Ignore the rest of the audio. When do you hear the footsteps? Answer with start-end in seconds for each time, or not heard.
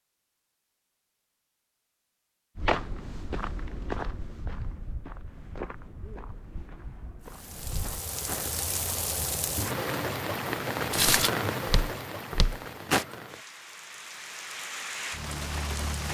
2.5-8.6, 10.9-13.1.